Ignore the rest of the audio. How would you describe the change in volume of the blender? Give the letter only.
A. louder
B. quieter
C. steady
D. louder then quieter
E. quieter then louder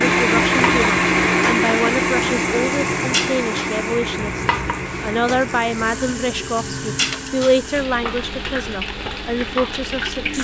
B.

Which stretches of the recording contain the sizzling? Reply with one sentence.
You can hear the sizzling from 0.0 to 10.3 s.